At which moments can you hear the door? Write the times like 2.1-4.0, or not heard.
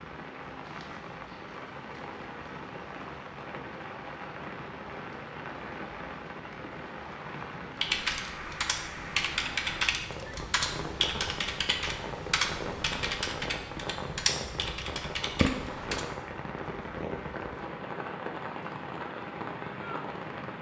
not heard.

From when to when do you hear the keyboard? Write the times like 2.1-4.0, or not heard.
7.8-16.1.